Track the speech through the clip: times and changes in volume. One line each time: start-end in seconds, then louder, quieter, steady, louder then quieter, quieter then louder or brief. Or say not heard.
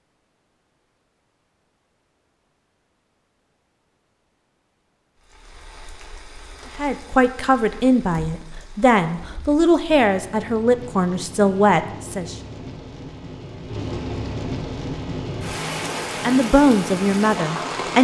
6.8-12.3 steady
16.2-18.0 brief.